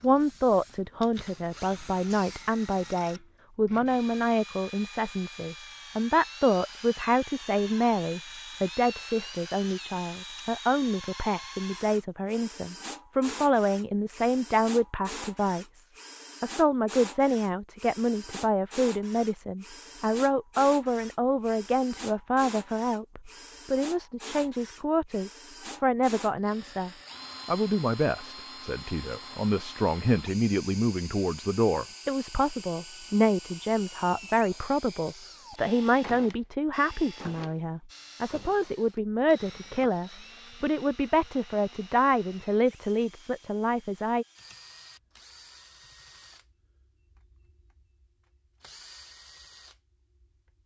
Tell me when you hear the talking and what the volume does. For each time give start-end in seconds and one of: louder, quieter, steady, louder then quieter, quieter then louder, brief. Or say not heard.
0.0-44.2 steady.